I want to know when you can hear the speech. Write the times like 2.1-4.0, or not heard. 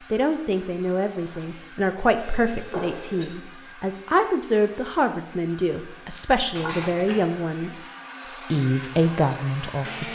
0.1-7.8, 8.5-10.0.